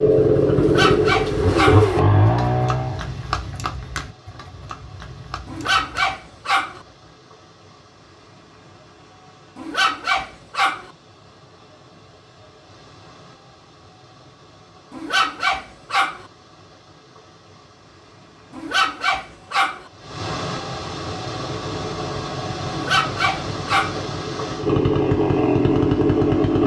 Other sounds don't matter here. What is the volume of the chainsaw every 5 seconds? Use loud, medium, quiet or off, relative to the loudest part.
loud, off, off, off, medium, loud.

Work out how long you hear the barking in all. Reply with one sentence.
You can hear the barking for 8 seconds altogether.